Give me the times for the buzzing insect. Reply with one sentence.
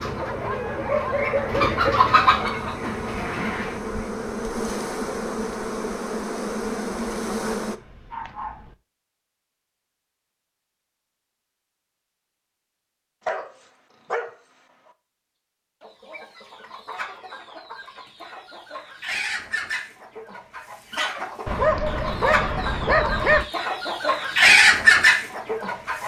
The buzzing insect can be heard from 0.0 to 7.8 s.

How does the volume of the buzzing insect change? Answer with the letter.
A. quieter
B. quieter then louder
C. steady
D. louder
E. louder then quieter
D.